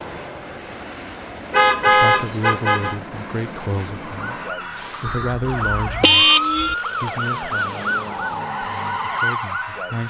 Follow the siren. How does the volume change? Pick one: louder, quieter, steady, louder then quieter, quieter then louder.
louder.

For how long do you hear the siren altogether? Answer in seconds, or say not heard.
6 s.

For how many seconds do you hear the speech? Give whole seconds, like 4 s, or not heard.
8 s.